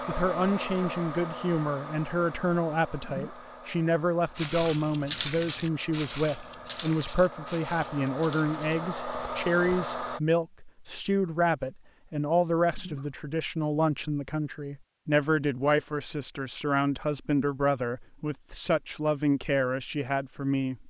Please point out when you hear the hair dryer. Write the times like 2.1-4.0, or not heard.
0.0-10.2.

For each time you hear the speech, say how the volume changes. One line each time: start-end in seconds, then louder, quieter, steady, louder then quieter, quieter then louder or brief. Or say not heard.
0.1-20.8 steady.